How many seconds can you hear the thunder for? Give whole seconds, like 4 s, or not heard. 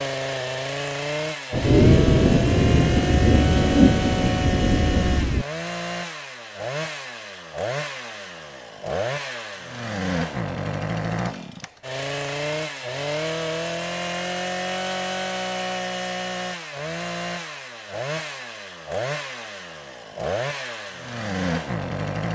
4 s.